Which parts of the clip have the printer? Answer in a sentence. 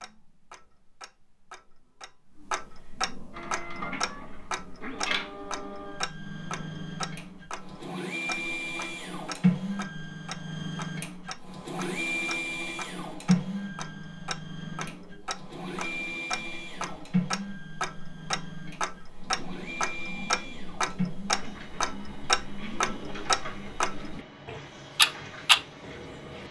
You can hear the printer from 3.3 to 26.4 s.